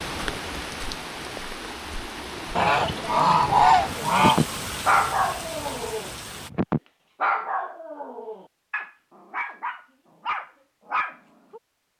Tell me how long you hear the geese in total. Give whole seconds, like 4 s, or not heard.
2 s.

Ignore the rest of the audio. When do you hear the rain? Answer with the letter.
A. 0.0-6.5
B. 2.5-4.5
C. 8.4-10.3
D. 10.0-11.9
A.